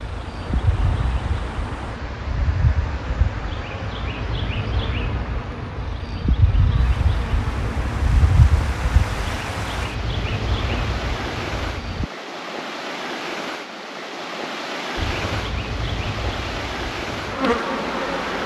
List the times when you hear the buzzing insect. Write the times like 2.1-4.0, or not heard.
0.0-12.1, 14.9-18.4.